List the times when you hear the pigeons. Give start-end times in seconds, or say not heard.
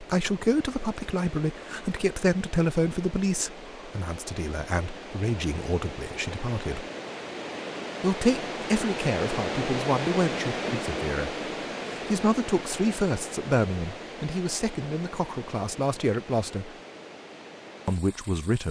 not heard.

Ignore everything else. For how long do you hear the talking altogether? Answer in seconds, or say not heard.
16 s.